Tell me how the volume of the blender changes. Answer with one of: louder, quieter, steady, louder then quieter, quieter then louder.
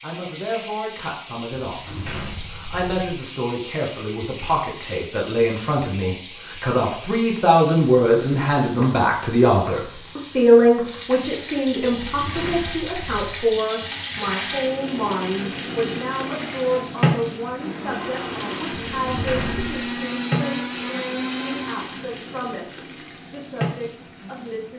louder.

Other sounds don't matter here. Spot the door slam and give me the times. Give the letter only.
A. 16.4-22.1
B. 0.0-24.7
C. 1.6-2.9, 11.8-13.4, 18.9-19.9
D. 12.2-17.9
C.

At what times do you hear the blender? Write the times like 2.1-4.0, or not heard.
16.4-22.1.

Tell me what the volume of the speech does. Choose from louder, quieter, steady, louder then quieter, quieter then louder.
louder then quieter.